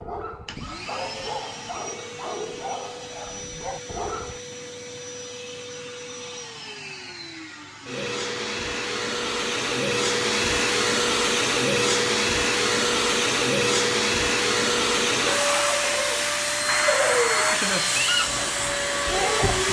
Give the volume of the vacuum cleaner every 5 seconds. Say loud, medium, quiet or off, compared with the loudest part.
quiet, medium, loud, loud.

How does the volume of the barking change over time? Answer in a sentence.
The volume of the barking stays about the same.